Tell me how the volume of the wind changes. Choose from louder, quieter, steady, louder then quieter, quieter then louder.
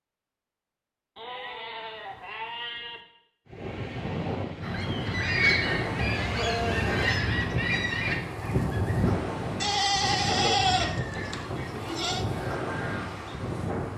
steady.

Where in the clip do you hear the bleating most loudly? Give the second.
11 s.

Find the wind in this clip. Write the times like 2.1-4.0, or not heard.
3.5-13.9.